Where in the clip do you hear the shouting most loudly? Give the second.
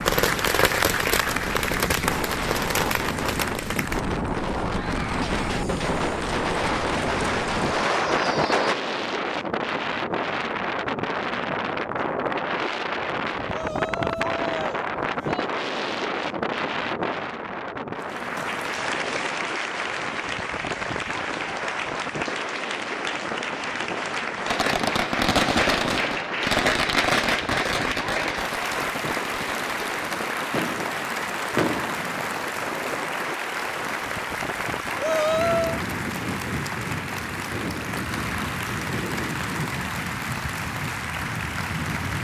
35 s.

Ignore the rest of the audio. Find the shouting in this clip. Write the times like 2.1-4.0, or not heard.
13.5-15.5, 35.0-35.8.